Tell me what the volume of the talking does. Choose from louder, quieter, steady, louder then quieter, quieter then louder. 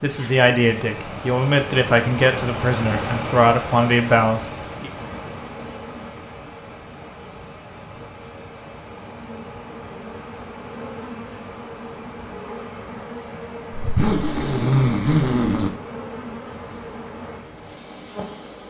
steady.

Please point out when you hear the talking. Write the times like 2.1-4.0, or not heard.
0.0-4.9.